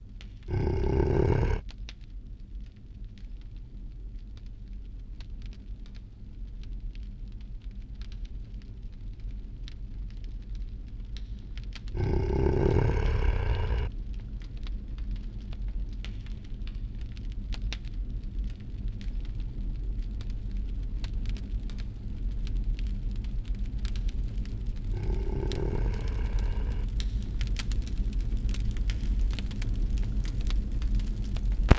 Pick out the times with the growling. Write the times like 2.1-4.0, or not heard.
0.5-1.6, 11.9-13.9, 24.9-26.9.